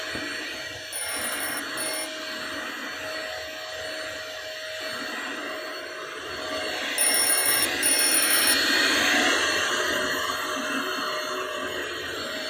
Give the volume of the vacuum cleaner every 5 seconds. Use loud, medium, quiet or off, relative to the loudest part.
medium, loud, loud.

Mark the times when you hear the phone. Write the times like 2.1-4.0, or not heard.
0.9-2.1, 7.0-8.6.